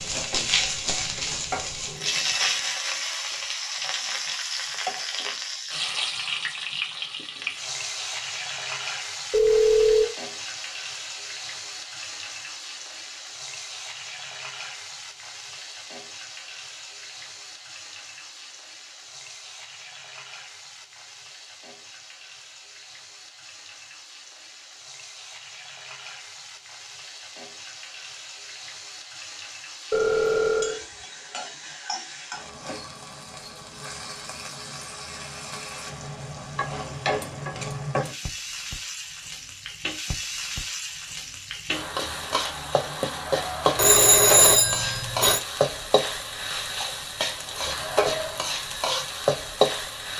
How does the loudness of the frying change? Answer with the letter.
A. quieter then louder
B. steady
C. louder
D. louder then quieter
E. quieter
A.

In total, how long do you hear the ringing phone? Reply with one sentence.
The ringing phone can be heard for 3 seconds in total.